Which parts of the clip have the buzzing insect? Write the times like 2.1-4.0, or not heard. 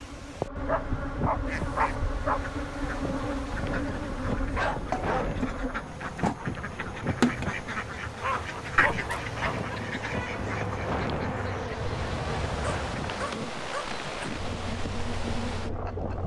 0.0-16.2.